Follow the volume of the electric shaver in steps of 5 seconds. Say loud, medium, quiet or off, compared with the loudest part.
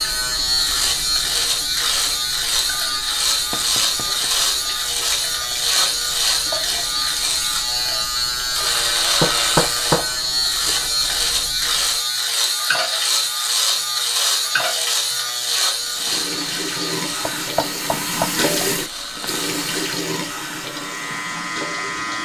loud, loud, loud, medium, medium.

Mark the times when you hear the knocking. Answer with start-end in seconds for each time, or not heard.
3.5-4.3, 9.2-10.1, 17.2-18.3.